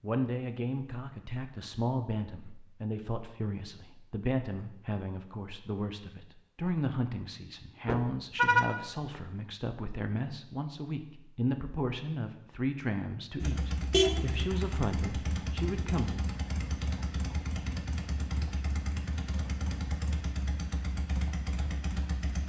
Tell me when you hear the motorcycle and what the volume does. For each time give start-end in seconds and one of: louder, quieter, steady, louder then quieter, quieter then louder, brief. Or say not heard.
13.4-22.4 steady.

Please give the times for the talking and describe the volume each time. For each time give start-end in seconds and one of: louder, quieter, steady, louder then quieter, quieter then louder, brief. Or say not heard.
0.0-16.2 steady.